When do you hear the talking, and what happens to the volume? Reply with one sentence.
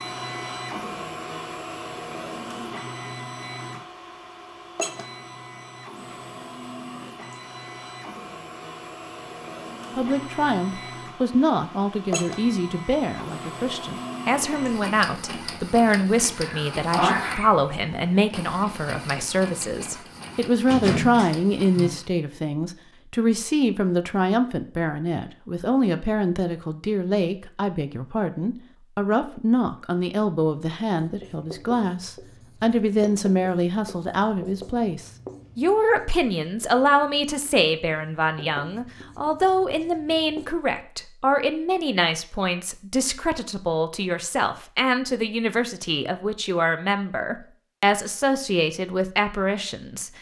The talking can be heard from 9.9 to 50.1 s, at a steady volume.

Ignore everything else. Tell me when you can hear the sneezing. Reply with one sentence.
You can hear the sneezing from 16.4 to 17.5 s.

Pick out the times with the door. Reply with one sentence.
The door can be heard from 20.6 to 21.9 s.